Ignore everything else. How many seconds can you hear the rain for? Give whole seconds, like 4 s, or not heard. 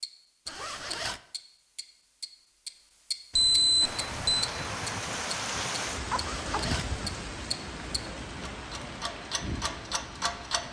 7 s.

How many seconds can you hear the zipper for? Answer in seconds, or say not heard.
2 s.